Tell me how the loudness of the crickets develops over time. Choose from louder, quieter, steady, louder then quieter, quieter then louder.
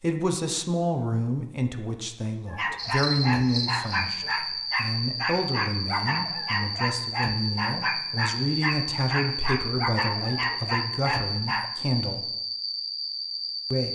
steady.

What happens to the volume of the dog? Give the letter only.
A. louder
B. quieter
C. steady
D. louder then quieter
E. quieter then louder
C.